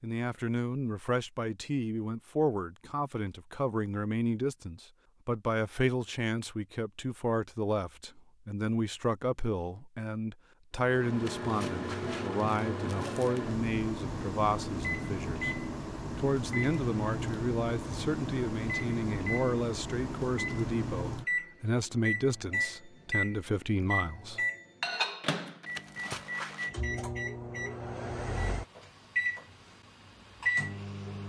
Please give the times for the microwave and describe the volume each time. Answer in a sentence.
You can hear the microwave from 10.8 to 31.2 s, at a steady volume.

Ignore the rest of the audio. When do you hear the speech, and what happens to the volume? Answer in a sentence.
The speech can be heard from 0.0 to 15.5 s, at a steady volume; and from 16.1 to 24.4 s, at a steady volume.